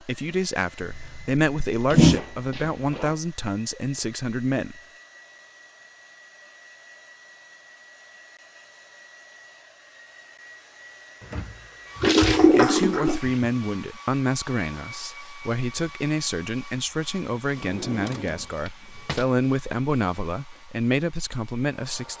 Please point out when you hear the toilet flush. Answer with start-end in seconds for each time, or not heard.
0.8-2.2, 12.0-13.5.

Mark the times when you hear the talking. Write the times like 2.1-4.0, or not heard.
0.0-4.8, 12.4-22.1.